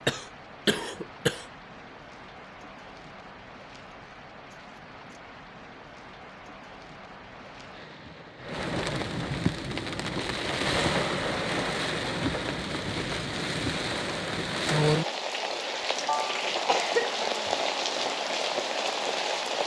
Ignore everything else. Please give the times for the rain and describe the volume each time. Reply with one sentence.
The rain can be heard from 0.0 to 19.6 s, getting louder.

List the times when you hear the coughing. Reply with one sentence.
You can hear the coughing from 0.1 to 1.4 s and from 16.1 to 18.1 s.